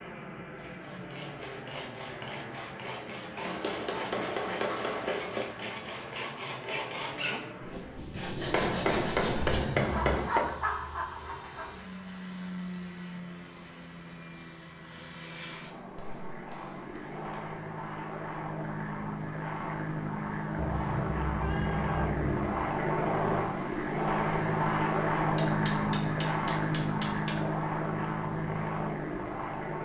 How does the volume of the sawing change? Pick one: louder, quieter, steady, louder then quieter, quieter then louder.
louder.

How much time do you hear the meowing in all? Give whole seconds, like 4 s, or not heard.
3 s.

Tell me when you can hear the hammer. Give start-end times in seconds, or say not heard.
3.4-5.5, 8.4-10.6, 15.9-17.5, 25.1-27.4.